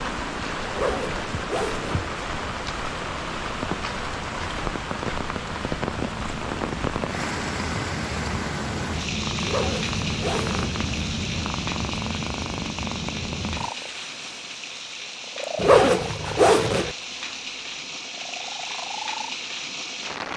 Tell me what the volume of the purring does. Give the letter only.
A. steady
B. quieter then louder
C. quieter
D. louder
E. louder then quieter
E.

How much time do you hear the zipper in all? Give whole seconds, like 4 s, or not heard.
4 s.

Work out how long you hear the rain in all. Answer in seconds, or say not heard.
20 s.